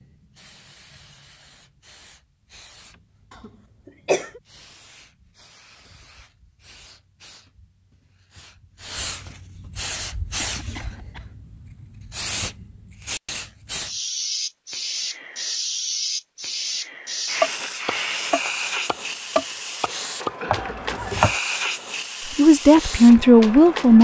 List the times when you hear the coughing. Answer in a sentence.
You can hear the coughing from 3.4 to 4.4 s, from 10.3 to 11.3 s and from 20.4 to 21.2 s.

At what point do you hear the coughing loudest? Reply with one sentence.
The loudest moment of the coughing is at 4 seconds.